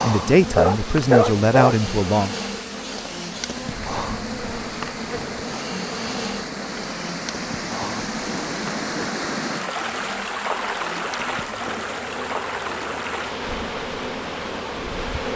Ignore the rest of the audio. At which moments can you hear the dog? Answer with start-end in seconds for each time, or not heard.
0.3-1.8.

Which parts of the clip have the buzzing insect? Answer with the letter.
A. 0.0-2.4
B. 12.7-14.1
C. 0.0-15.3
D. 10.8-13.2
C.